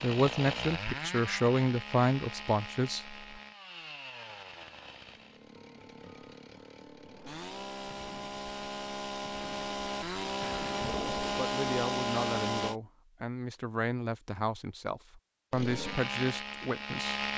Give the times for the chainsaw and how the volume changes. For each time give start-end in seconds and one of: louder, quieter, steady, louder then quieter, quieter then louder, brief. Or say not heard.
0.0-12.8 quieter then louder
15.5-17.3 brief.